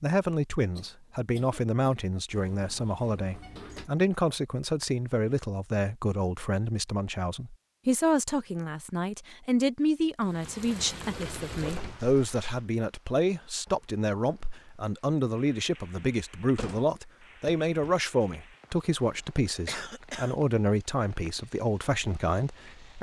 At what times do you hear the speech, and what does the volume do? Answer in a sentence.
You can hear the speech from 0.0 to 22.9 s, at a steady volume.